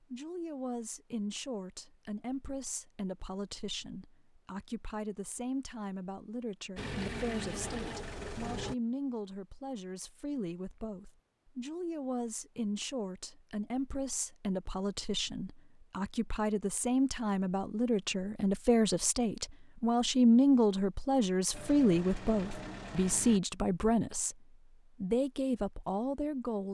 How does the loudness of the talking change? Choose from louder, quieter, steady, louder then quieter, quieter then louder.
louder.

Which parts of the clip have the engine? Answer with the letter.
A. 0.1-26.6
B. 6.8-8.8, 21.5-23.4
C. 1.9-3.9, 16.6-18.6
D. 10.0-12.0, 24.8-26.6
B.